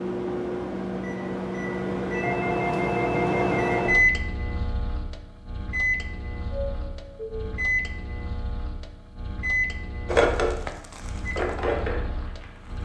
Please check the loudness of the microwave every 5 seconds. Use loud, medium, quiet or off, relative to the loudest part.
loud, medium, quiet.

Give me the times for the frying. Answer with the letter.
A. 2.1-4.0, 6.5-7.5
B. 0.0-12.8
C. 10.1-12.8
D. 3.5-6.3
C.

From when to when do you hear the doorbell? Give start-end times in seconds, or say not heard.
2.1-4.0, 6.5-7.5.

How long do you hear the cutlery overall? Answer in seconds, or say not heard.
not heard.